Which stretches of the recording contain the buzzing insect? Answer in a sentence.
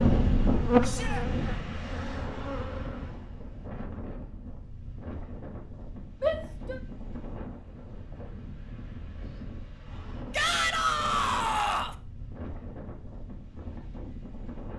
The buzzing insect can be heard from 0.0 to 3.0 s.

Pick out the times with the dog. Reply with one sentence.
The dog can't be heard in this clip.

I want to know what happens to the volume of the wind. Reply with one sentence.
The volume of the wind goes down.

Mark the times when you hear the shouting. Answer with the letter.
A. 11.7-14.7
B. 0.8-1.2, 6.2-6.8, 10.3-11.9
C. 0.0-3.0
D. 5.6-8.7
B.